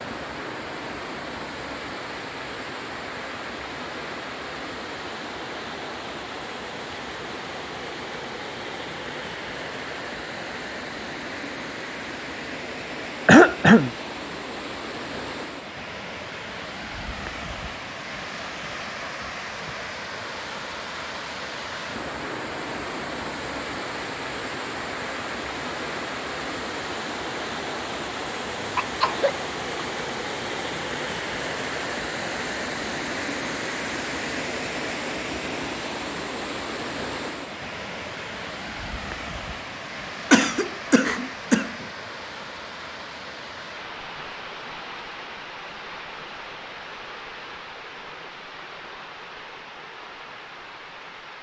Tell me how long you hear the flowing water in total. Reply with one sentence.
The flowing water can be heard for 51 seconds in total.